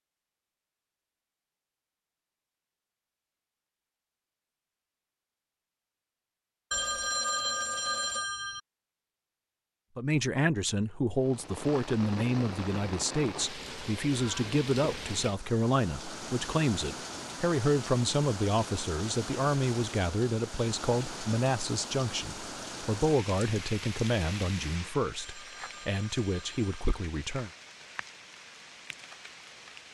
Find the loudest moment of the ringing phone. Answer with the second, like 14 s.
7 s.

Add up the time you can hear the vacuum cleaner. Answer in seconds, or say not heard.
not heard.